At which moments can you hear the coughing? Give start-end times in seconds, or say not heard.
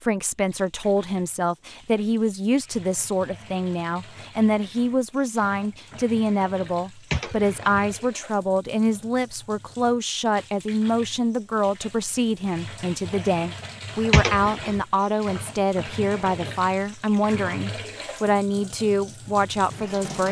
7.1-8.0, 14.1-14.8.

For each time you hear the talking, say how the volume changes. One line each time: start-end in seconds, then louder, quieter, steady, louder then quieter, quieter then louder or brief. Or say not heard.
0.0-20.2 steady.